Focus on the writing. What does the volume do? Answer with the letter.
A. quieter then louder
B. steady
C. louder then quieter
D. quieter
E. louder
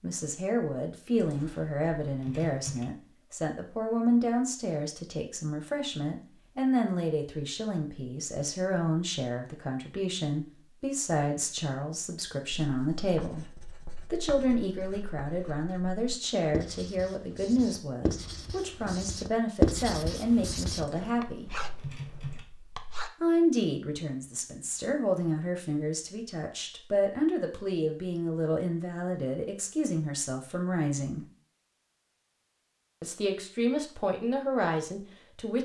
C.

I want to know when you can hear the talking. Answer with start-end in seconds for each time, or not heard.
0.0-13.4, 14.1-21.6, 23.2-31.2, 33.0-35.5.